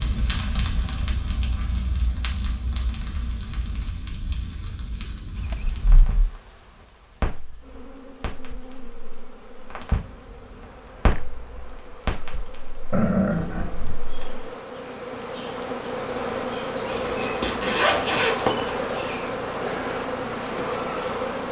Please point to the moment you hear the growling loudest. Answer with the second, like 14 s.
13 s.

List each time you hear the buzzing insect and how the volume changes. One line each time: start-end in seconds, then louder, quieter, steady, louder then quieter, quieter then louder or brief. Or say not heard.
5.3-21.4 louder.